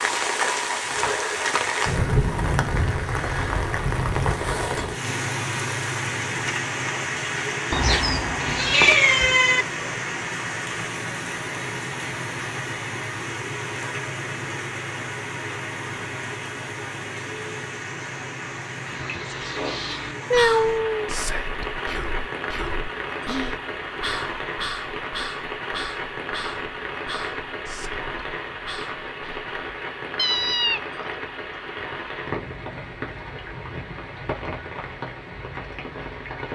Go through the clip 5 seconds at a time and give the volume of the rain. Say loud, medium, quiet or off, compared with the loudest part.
loud, loud, medium, medium, medium, medium, medium, medium.